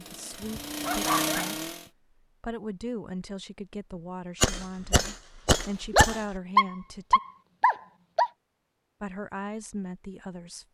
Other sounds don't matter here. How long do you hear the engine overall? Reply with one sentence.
You can hear the engine for 2 seconds altogether.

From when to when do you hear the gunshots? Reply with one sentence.
You can hear the gunshots from 4.4 to 6.4 s.